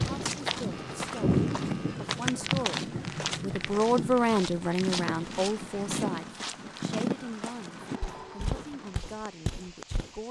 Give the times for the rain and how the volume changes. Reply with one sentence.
You can hear the rain from 0.0 to 10.2 s, getting quieter.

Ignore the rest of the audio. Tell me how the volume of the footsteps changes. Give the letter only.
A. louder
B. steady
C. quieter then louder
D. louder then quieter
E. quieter
B.